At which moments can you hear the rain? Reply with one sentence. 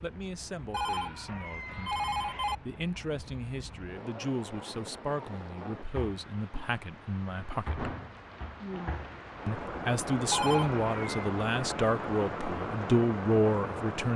You can hear the rain from 0.0 to 14.1 s.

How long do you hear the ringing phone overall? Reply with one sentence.
The ringing phone can be heard for 3 seconds in total.